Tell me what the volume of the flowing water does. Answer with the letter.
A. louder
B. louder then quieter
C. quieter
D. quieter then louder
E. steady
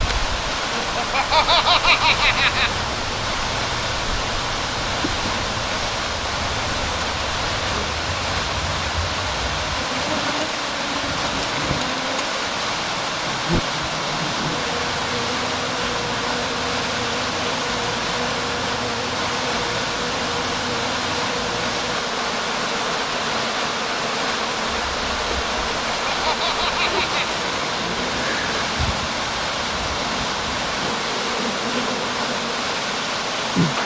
E.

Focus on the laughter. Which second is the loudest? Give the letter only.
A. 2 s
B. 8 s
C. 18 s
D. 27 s
A.